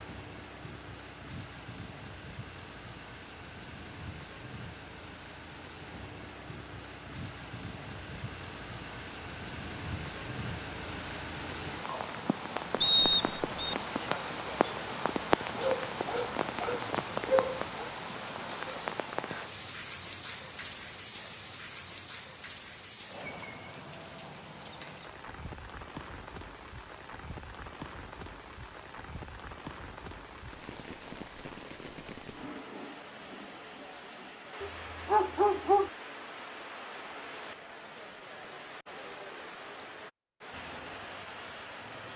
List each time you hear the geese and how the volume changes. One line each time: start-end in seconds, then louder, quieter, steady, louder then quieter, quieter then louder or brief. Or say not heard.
not heard.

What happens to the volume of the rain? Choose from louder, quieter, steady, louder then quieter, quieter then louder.
louder then quieter.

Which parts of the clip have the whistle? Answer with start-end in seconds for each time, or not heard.
12.8-13.8.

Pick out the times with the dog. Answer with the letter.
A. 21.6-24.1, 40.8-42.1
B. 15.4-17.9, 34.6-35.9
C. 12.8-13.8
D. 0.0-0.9
B.